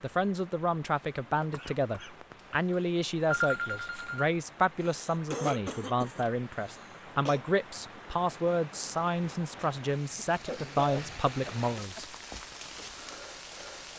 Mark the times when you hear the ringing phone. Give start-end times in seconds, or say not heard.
3.3-4.2.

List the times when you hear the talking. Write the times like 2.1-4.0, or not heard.
0.0-12.1.